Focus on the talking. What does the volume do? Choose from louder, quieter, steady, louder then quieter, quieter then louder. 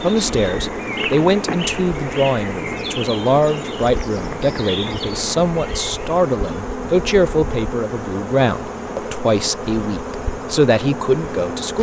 steady.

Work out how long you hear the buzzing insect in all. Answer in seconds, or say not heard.
12 s.